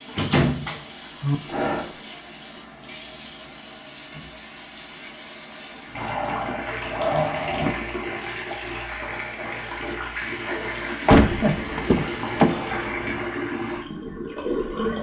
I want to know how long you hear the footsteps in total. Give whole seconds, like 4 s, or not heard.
not heard.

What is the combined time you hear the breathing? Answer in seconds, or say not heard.
4 s.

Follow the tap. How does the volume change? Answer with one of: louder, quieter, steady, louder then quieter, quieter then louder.
louder.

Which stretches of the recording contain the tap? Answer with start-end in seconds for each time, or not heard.
0.0-14.9.